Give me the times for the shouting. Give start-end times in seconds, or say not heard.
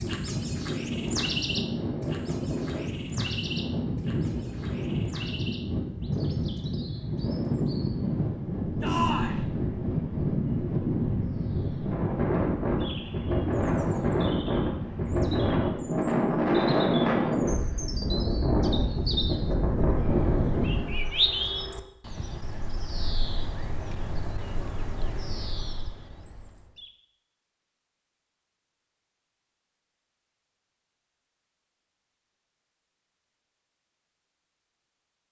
8.8-9.4.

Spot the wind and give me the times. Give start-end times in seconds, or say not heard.
0.0-20.9.